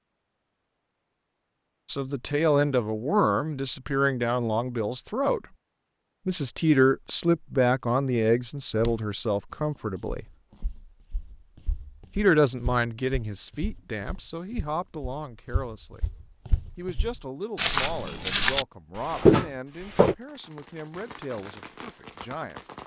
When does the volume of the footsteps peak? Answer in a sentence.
The loudest moment of the footsteps is at 19 seconds.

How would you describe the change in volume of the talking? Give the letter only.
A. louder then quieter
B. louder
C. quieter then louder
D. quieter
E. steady
D.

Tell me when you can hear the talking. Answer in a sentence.
You can hear the talking from 1.9 to 5.5 s, from 6.2 to 10.2 s, from 12.2 to 16.1 s and from 16.8 to 22.6 s.